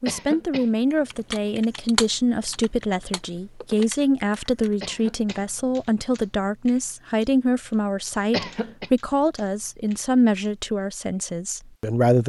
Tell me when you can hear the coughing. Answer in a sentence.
The coughing can be heard from 0.1 to 0.7 s, from 4.8 to 5.5 s and from 8.3 to 8.9 s.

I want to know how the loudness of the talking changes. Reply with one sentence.
The volume of the talking stays about the same.